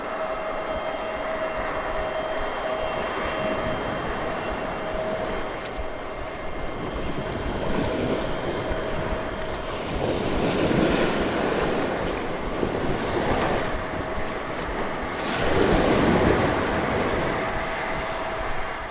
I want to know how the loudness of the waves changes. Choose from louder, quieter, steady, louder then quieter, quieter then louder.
louder.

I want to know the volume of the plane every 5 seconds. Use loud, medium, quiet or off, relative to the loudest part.
loud, medium, medium, loud.